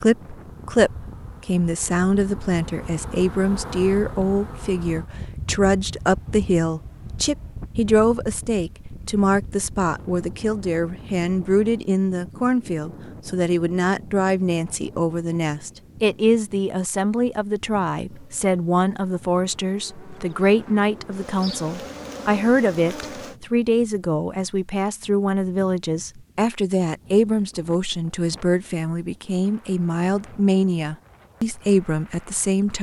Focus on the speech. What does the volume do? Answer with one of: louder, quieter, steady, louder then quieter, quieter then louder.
steady.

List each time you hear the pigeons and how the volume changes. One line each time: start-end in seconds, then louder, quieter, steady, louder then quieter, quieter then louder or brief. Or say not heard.
not heard.